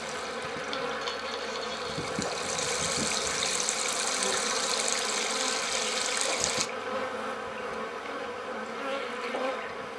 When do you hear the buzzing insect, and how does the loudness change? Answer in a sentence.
You can hear the buzzing insect from 0.0 to 9.9 s, at a steady volume.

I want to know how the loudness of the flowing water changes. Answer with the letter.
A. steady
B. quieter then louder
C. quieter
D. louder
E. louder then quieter
D.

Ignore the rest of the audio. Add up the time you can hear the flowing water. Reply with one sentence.
The flowing water can be heard for 7 seconds in total.